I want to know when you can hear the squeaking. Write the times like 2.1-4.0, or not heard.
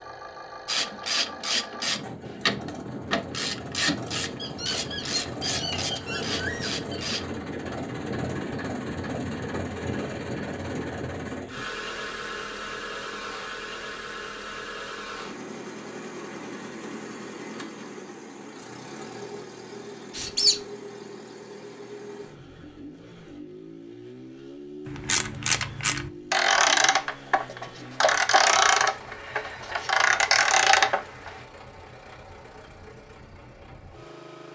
4.3-7.1, 20.1-20.6.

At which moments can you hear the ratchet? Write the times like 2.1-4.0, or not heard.
0.7-7.3, 24.9-31.3.